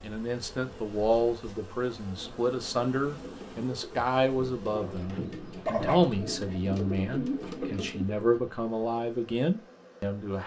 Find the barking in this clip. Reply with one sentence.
You can hear the barking from 5.5 to 6.5 s.